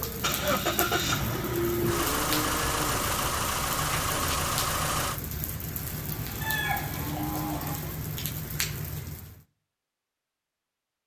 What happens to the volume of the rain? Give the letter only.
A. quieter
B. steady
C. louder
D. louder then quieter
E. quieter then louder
B.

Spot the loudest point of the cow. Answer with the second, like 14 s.
2 s.